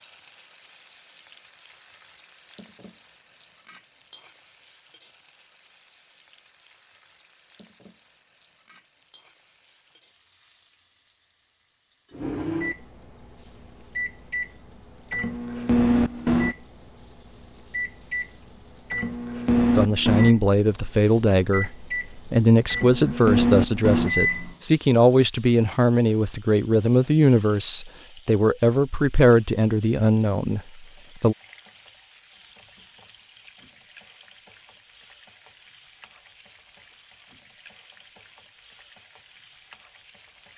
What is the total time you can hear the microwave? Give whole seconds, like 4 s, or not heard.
10 s.